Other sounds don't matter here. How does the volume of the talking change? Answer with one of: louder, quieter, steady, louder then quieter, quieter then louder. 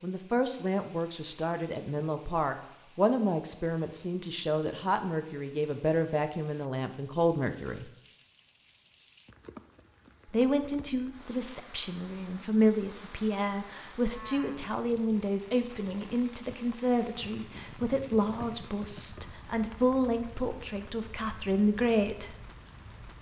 steady.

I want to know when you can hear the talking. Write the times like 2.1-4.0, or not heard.
0.0-7.8, 10.3-22.4.